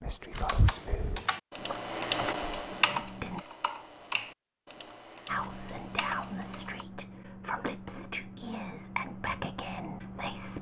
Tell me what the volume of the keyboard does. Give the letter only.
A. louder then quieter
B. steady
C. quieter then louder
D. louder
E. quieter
A.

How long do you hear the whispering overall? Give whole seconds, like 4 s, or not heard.
9 s.